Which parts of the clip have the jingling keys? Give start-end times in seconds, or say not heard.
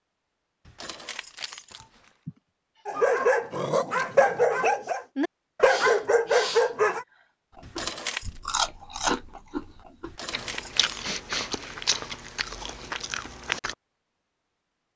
0.7-2.1, 7.6-8.4, 10.0-11.2.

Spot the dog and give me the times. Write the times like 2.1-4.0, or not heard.
2.9-7.0.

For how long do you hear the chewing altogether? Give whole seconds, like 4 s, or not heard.
6 s.